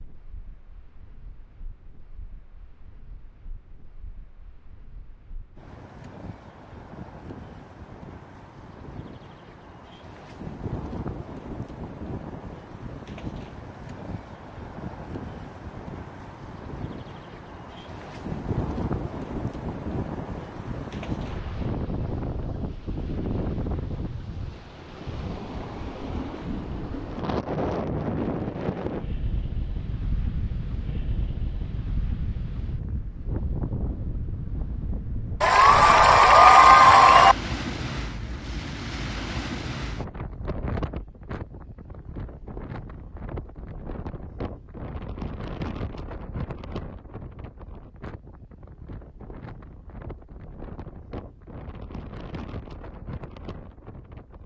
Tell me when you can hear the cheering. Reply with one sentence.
The cheering can be heard from 35.4 to 37.4 s.